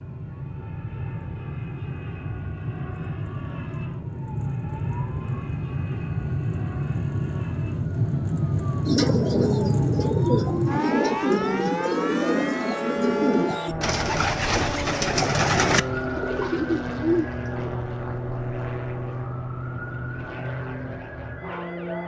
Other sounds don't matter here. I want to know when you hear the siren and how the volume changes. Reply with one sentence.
The siren can be heard from 0.0 to 22.0 s, getting louder then quieter.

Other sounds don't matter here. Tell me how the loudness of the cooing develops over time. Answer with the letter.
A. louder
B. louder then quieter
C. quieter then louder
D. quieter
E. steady
E.